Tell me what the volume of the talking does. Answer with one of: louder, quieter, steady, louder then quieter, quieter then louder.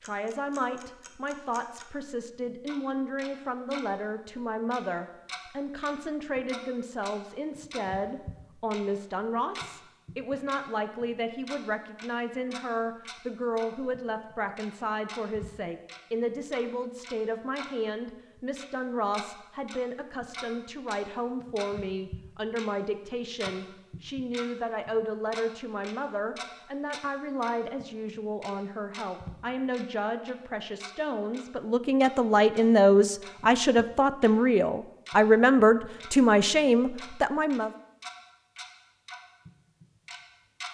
louder.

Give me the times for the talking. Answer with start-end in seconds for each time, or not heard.
0.0-37.7.